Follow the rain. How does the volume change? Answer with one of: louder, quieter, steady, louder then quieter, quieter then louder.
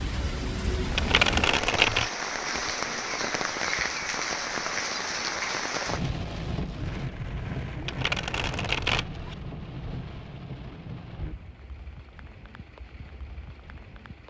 quieter.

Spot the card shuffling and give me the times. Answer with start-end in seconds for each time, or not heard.
0.9-2.1, 7.8-9.3.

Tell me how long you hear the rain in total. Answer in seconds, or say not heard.
14 s.